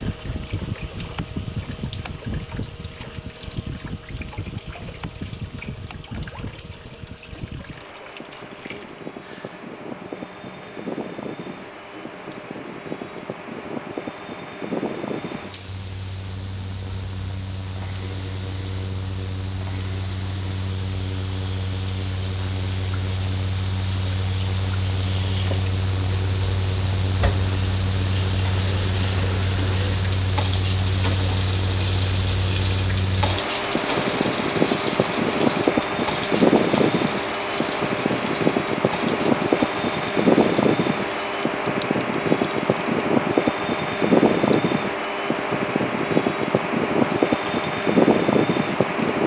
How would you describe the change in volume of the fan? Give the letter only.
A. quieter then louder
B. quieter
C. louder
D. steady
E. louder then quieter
C.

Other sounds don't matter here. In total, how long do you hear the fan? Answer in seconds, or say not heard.
49 s.